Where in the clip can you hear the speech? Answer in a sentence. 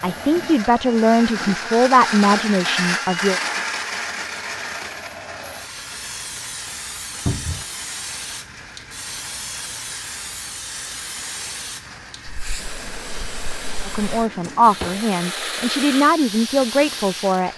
You can hear the speech from 0.0 to 3.4 s and from 13.8 to 17.5 s.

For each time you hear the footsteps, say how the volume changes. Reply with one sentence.
The footsteps can't be heard in this clip.